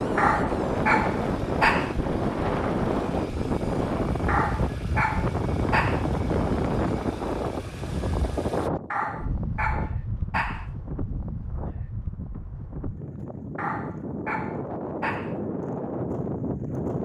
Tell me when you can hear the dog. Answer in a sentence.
The dog can be heard from 0.1 to 1.9 s, from 4.2 to 6.0 s, from 8.9 to 10.7 s and from 13.6 to 15.3 s.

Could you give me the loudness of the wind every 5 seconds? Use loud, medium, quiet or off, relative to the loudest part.
loud, loud, medium, loud.